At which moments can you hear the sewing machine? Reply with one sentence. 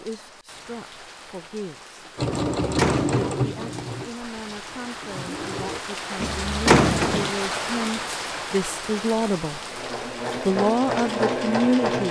You can hear the sewing machine from 2.1 to 5.8 s and from 9.4 to 12.0 s.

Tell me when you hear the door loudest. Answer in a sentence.
The loudest moment of the door is at 7 seconds.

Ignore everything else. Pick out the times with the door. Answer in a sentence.
The door can be heard from 2.3 to 3.4 s and from 6.2 to 7.3 s.